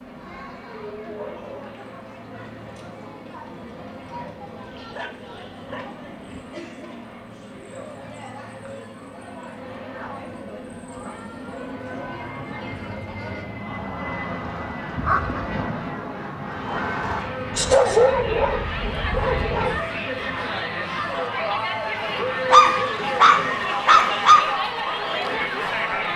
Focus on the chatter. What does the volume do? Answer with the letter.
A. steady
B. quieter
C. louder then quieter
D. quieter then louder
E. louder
E.